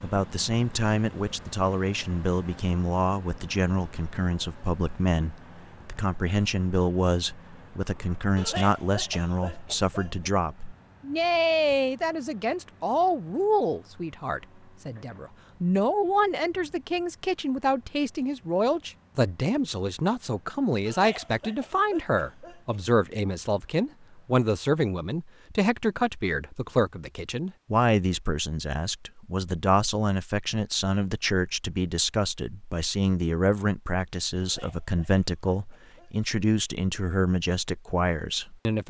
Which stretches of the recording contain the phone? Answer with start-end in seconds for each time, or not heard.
not heard.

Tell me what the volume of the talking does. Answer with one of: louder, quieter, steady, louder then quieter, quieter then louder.
steady.